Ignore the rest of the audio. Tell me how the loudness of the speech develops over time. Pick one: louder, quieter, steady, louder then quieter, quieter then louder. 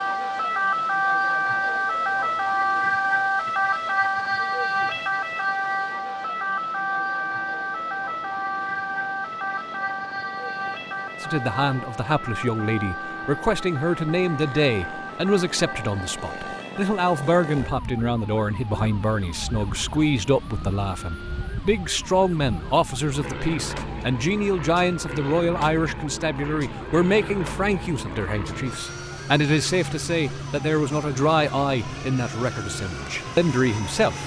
steady.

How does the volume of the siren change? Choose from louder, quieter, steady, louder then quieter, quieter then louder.
quieter.